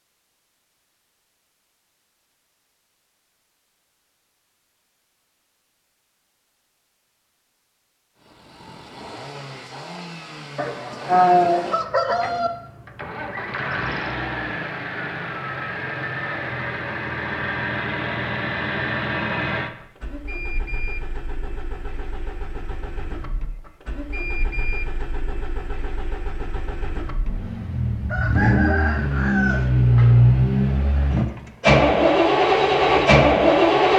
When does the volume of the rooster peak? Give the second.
11 s.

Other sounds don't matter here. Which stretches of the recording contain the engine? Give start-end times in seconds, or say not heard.
8.2-33.9.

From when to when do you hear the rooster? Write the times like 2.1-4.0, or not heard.
10.6-12.5, 28.1-29.7.